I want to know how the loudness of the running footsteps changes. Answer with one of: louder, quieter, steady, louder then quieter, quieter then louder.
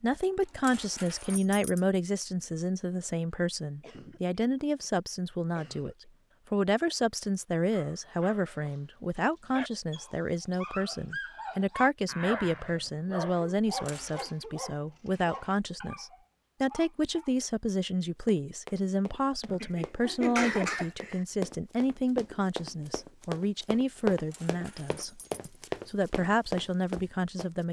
louder.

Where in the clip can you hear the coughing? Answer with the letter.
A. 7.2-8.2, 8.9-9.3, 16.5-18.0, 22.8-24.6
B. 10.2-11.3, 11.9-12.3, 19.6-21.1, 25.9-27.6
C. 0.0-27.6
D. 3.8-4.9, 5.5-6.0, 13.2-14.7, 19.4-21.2
D.